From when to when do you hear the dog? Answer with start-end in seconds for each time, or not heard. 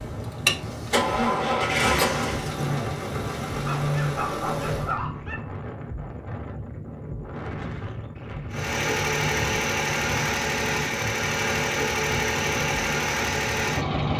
3.6-5.3.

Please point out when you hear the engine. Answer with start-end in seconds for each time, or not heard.
0.0-5.0, 8.5-14.1.